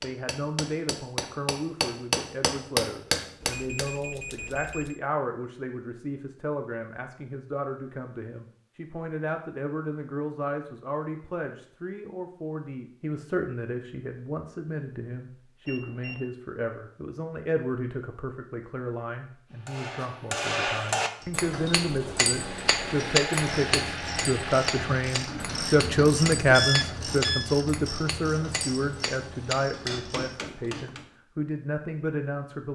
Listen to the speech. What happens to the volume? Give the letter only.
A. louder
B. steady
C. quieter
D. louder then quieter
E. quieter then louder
A.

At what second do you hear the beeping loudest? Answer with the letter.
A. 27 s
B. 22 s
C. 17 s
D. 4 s
A.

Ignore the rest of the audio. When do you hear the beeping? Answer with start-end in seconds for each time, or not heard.
3.4-5.0, 15.7-16.2, 26.5-27.5.